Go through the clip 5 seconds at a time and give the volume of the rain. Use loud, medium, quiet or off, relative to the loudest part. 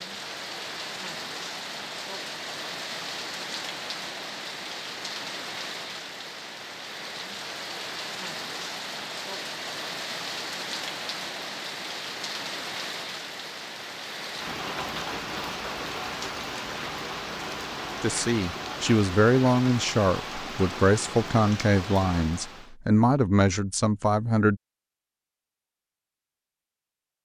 loud, loud, loud, loud, loud, off.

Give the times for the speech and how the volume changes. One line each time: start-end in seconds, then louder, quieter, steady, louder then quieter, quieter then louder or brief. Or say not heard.
18.0-24.6 steady.